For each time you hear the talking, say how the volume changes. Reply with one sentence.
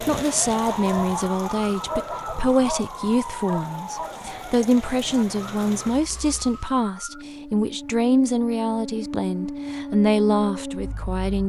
You can hear the talking from 0.1 to 11.4 s, at a steady volume.